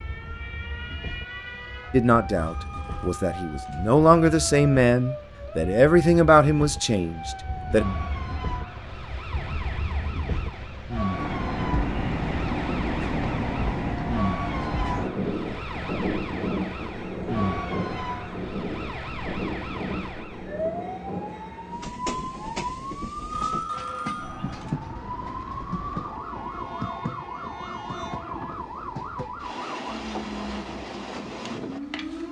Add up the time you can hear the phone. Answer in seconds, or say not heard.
3 s.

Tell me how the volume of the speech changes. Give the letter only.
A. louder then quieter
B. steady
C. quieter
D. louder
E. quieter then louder
A.